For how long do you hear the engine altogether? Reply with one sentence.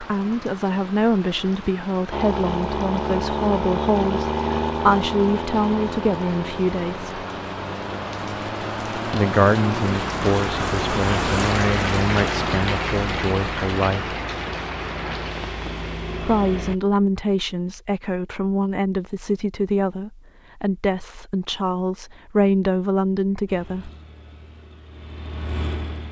The engine can be heard for 17 seconds in total.